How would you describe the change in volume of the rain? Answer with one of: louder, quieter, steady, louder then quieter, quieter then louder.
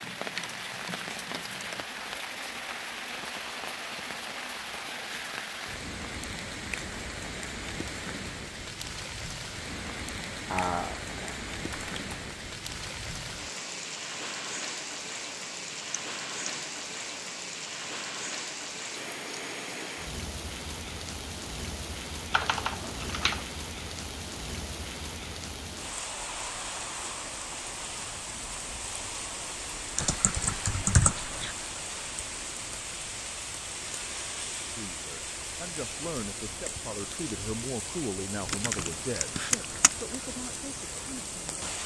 steady.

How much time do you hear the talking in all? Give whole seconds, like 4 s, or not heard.
7 s.